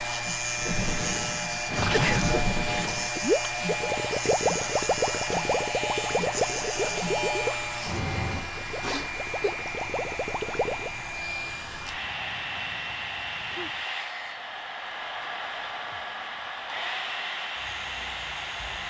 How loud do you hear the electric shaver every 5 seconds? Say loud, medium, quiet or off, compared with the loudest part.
loud, loud, quiet, quiet.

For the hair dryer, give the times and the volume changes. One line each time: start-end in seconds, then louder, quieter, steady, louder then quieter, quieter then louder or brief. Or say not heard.
0.0-18.8 steady.